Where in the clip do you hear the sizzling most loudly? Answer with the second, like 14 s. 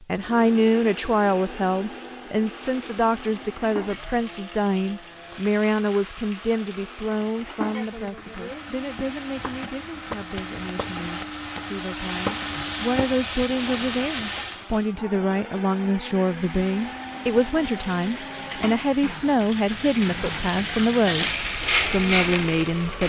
22 s.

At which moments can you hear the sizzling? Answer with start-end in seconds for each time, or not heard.
2.4-14.7, 16.4-23.0.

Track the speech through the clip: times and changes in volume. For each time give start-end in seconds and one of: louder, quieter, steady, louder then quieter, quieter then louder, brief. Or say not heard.
0.0-23.0 quieter then louder.